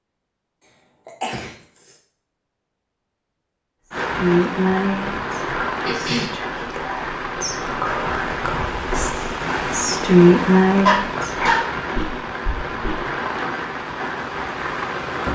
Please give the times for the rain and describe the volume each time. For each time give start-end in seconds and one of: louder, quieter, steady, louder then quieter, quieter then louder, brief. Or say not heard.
3.9-15.2 steady.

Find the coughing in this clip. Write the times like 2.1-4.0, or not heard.
1.1-1.9, 5.8-6.4, 10.8-11.6.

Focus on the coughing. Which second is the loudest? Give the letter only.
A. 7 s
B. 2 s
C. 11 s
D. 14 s
C.